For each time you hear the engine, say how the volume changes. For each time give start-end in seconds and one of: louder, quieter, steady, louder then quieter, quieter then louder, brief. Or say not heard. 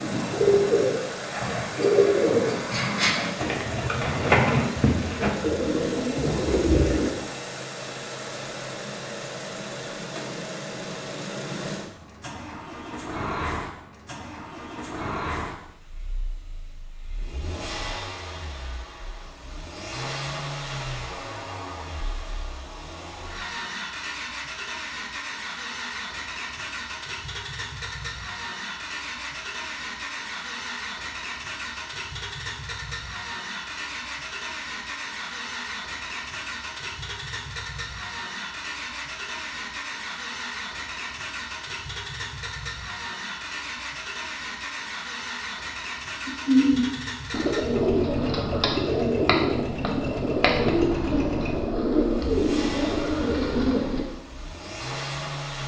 0.0-55.6 steady.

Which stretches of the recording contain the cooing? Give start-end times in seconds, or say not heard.
0.0-7.1, 46.2-54.0.